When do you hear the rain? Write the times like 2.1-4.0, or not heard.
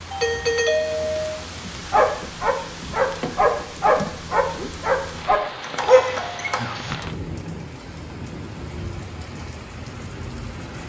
0.0-10.8.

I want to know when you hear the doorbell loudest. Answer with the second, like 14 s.
1 s.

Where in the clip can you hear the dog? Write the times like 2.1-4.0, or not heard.
1.9-7.0.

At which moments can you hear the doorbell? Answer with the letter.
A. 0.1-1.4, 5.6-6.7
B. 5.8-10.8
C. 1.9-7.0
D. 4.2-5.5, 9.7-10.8
A.